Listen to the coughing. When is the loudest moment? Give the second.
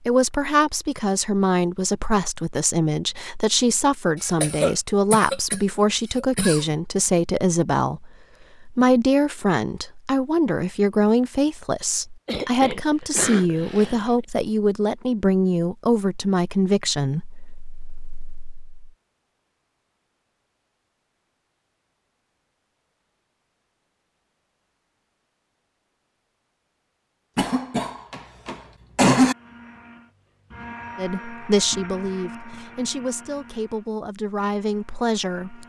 29 s.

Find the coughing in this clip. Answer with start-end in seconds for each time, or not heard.
4.2-6.8, 12.2-14.2, 27.4-29.4.